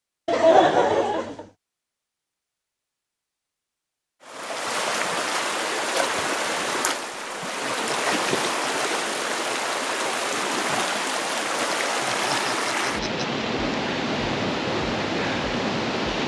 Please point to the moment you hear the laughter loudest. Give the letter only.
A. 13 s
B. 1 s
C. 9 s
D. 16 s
B.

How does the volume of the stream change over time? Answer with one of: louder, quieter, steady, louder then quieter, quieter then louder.
steady.